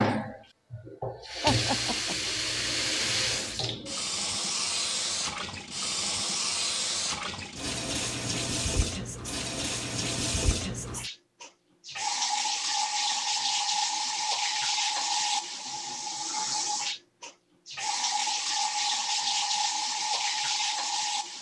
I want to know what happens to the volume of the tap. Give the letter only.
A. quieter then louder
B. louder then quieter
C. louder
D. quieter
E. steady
E.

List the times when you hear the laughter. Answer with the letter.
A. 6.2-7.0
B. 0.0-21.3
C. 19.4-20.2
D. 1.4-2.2
D.